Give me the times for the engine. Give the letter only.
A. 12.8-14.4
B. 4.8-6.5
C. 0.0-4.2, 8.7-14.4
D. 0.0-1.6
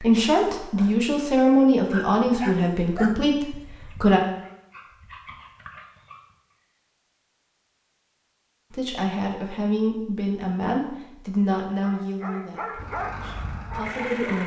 A.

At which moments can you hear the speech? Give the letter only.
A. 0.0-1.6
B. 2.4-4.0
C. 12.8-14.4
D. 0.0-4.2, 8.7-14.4
D.